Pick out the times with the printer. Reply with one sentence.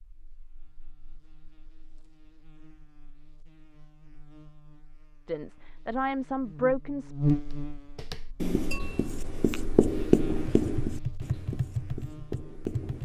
The printer can't be heard in this clip.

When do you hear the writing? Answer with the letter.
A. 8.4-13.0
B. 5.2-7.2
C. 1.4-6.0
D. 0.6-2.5
A.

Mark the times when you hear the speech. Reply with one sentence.
The speech can be heard from 5.2 to 7.2 s.